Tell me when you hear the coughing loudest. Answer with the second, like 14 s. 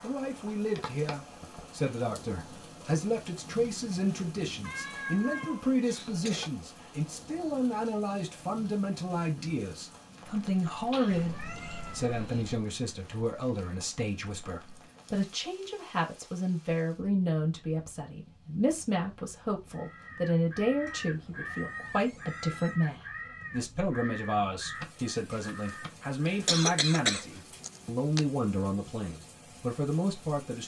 27 s.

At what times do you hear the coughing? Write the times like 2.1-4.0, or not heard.
5.4-6.5, 10.8-12.4, 26.2-28.2.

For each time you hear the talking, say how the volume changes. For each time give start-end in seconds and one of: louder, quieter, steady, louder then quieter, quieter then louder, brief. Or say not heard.
0.0-30.6 steady.